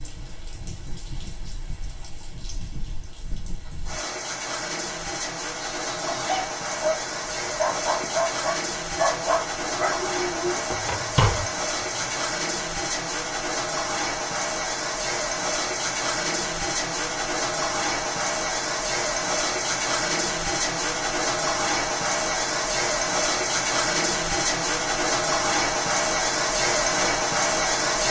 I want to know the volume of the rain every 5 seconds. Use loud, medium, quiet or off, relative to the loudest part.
quiet, medium, medium, loud, loud, loud.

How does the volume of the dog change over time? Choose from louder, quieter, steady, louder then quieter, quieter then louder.
steady.